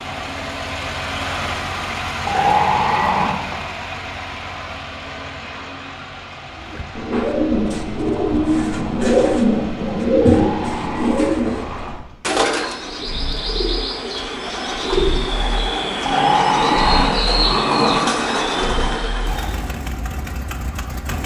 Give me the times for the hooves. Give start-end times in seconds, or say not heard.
not heard.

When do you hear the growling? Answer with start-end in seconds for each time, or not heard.
2.2-3.6, 10.2-11.9, 16.0-18.1.